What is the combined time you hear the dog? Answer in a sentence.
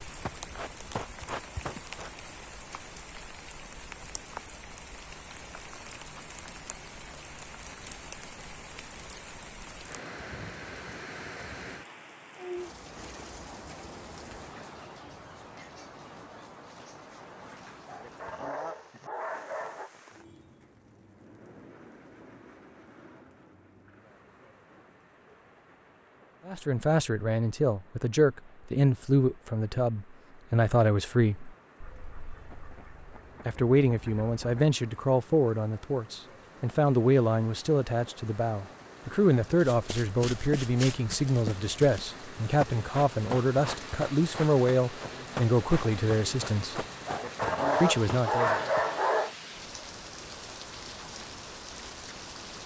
The dog can be heard for 4 seconds in total.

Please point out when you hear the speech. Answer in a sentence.
The speech can be heard from 26.4 to 31.6 s, from 33.5 to 46.9 s and from 47.8 to 48.6 s.